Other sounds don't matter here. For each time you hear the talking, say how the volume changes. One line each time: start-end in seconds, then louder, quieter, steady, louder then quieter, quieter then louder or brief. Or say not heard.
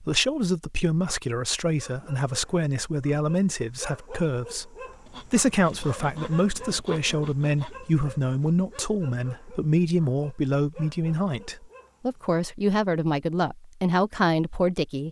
0.0-15.0 steady.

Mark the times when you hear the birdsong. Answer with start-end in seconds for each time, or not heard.
not heard.